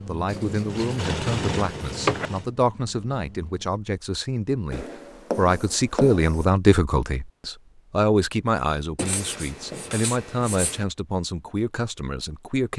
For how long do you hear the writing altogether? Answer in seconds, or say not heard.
6 s.